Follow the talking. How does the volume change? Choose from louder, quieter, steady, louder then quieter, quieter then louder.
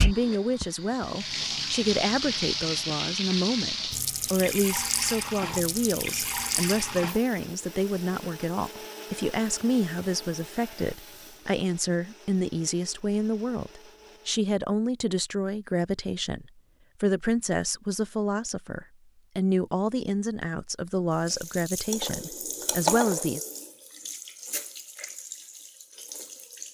steady.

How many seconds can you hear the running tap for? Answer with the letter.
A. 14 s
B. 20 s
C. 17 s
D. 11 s
C.